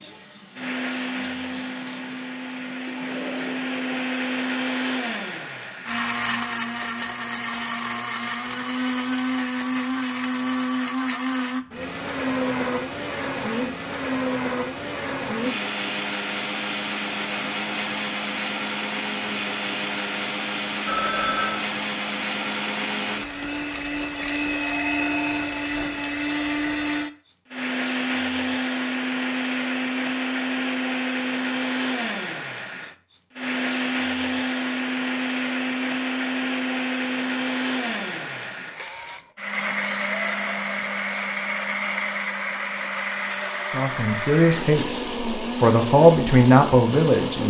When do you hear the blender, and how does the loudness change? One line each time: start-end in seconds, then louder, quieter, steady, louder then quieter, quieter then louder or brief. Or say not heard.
0.0-47.4 steady.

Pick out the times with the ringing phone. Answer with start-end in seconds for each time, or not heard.
20.9-21.6, 24.6-25.5.